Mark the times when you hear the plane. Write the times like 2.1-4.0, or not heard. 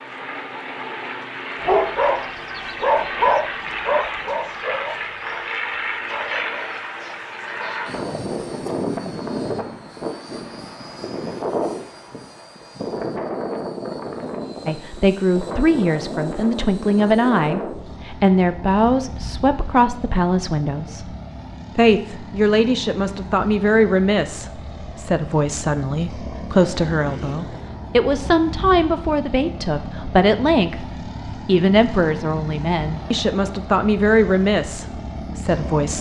0.0-35.9.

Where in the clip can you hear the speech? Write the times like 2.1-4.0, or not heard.
14.7-21.1, 21.8-35.9.